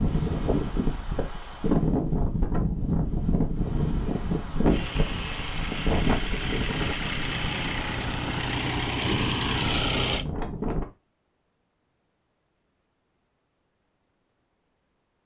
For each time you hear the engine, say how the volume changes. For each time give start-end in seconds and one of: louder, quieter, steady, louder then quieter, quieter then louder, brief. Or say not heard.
4.7-10.2 louder.